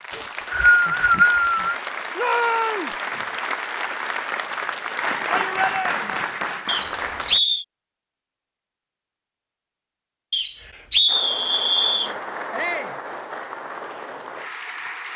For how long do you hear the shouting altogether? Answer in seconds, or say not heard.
2 s.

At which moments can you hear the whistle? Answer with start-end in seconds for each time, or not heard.
0.1-1.8, 6.7-7.7, 10.3-12.1.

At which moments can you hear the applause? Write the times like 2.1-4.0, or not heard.
0.0-7.4, 11.1-15.1.